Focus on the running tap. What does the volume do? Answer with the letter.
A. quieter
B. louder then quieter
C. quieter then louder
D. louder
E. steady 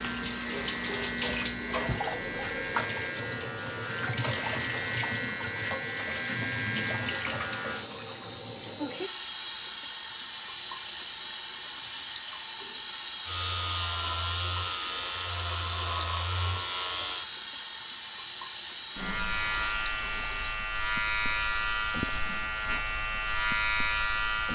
A.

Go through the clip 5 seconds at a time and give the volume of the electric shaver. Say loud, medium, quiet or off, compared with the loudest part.
medium, loud, loud, loud, loud.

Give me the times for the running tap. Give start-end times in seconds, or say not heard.
0.0-24.4.